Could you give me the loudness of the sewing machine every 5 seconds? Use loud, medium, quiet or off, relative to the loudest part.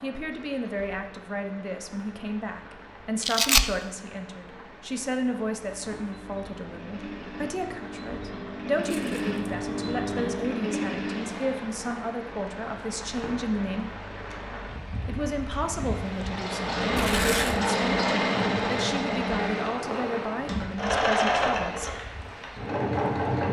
off, medium, medium, loud, loud.